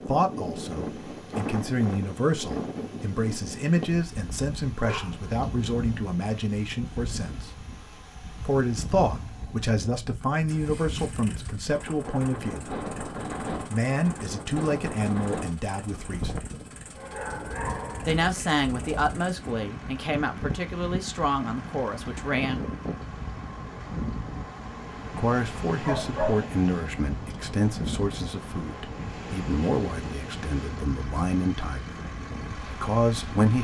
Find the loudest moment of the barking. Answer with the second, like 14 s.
26 s.